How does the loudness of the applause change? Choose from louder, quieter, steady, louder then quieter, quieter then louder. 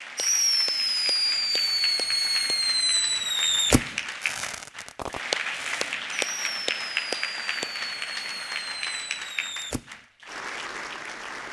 louder then quieter.